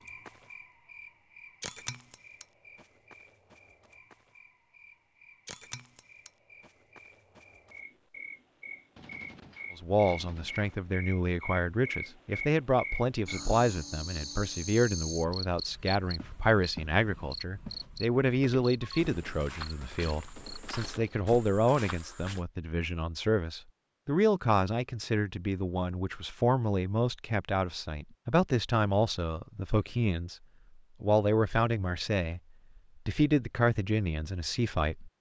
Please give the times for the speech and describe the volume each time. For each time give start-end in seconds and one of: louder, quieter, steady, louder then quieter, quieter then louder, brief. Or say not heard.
9.8-30.4 steady
31.0-32.4 brief
33.0-35.1 brief.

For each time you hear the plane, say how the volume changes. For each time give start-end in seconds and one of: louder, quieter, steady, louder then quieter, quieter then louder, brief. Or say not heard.
not heard.